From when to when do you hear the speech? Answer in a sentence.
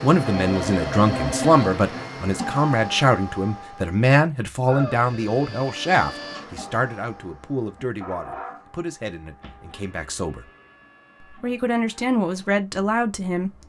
You can hear the speech from 0.0 to 10.5 s and from 11.2 to 13.5 s.